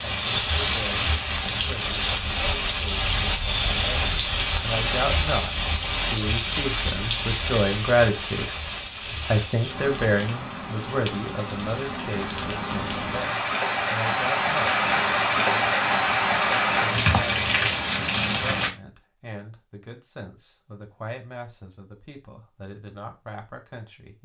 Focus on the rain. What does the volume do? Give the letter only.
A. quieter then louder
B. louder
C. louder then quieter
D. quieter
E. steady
A.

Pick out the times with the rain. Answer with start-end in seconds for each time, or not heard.
0.0-18.7.